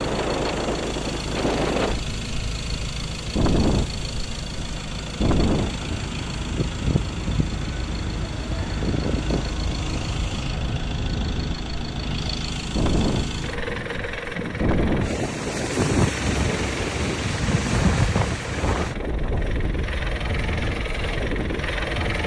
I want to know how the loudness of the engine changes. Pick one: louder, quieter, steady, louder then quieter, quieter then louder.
steady.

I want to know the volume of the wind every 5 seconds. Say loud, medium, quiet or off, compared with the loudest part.
loud, loud, loud, loud, medium.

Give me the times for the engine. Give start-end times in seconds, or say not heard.
0.0-22.2.